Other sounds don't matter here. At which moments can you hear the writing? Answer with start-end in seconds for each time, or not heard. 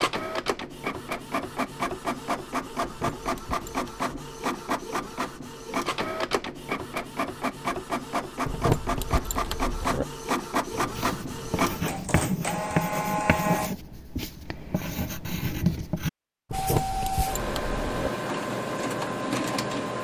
10.7-16.1.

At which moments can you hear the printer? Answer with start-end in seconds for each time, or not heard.
0.0-13.7, 16.5-19.9.